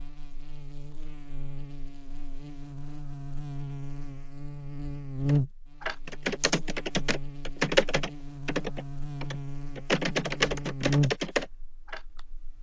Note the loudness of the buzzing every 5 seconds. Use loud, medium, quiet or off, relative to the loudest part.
medium, loud, loud.